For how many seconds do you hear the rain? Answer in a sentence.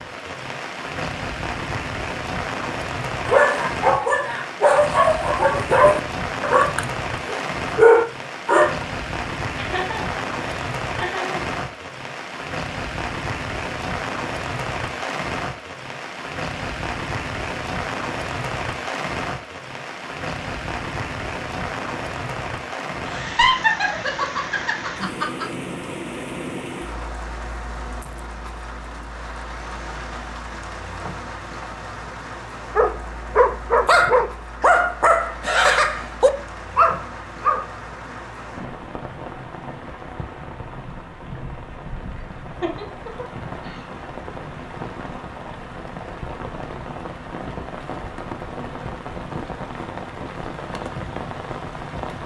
You can hear the rain for 52 seconds altogether.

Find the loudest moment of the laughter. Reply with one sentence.
The volume of the laughter peaks at 24 seconds.